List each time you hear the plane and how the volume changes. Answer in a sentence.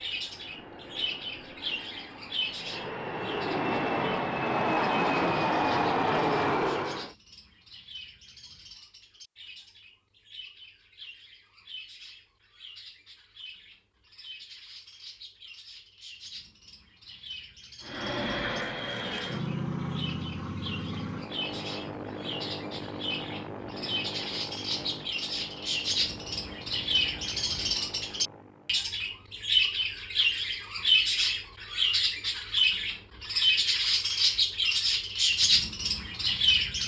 You can hear the plane from 0.0 to 7.2 s, getting louder; and from 17.8 to 28.9 s, getting quieter.